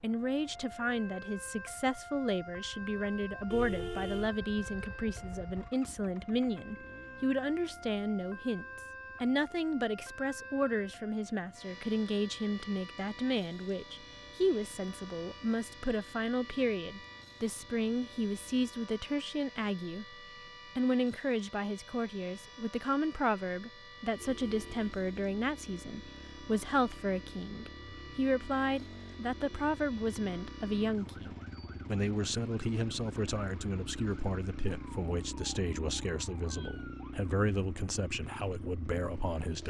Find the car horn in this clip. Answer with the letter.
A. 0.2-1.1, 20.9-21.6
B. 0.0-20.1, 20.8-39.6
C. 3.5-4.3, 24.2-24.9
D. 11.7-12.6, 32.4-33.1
C.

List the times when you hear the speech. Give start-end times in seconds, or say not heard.
0.0-20.1, 20.8-39.6.